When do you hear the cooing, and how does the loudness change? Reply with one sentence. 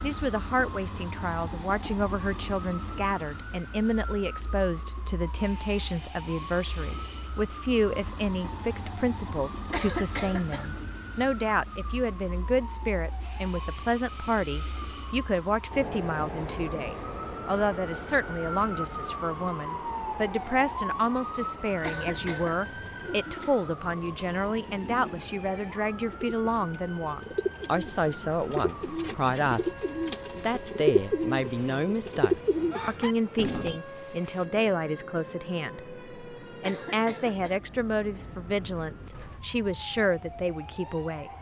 The cooing can be heard from 23.0 to 33.8 s, getting louder.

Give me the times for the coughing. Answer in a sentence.
The coughing can be heard from 9.7 to 10.7 s, from 21.8 to 22.6 s and from 36.6 to 37.6 s.